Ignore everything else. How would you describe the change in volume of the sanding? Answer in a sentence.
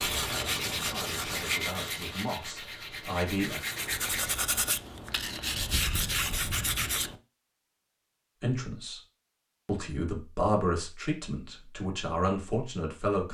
The loudness of the sanding goes down, then up.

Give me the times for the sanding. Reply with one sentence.
The sanding can be heard from 0.0 to 7.2 s.